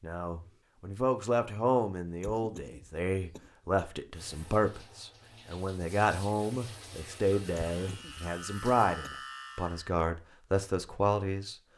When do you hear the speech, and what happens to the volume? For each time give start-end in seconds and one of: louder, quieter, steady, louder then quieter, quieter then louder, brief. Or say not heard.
0.0-11.6 steady.